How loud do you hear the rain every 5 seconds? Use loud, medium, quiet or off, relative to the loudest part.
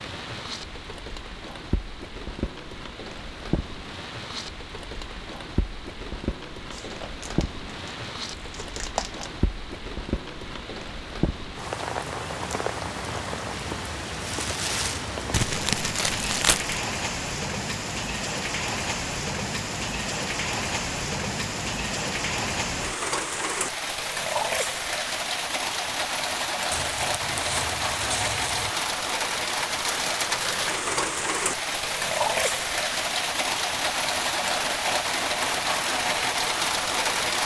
medium, medium, medium, medium, loud, loud, loud, loud.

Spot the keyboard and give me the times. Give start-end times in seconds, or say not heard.
not heard.